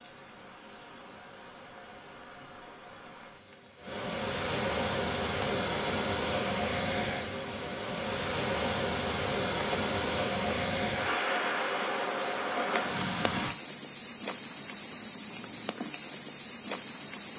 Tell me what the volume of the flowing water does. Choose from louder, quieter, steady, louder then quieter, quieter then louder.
louder.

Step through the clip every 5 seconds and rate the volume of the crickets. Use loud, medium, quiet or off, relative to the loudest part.
quiet, loud, loud, loud.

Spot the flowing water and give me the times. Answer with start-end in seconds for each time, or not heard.
0.0-13.5.